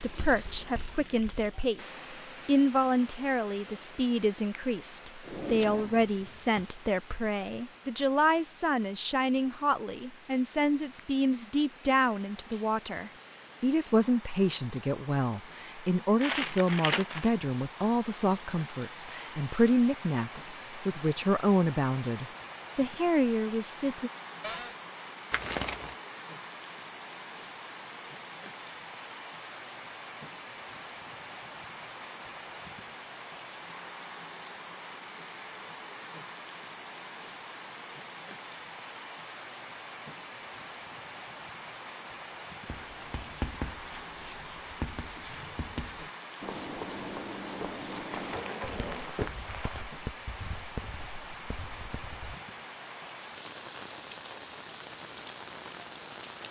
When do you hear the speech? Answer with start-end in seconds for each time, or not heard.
0.0-24.1.